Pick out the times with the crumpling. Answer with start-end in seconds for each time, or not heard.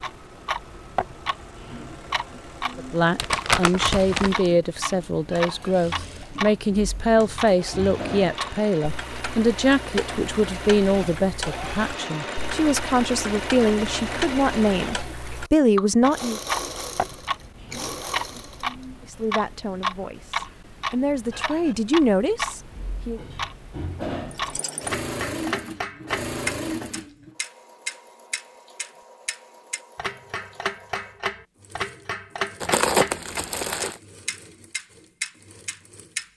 3.1-4.5, 32.6-34.0.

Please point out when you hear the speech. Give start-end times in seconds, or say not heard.
2.8-16.4, 19.0-23.2.